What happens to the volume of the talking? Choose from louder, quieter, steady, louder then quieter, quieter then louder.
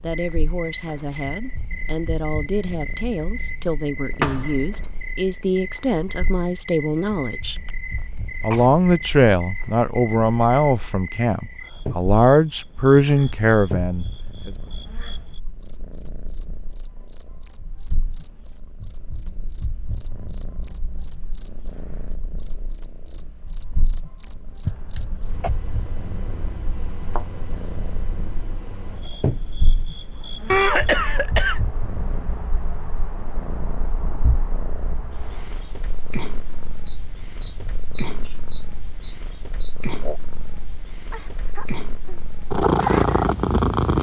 louder.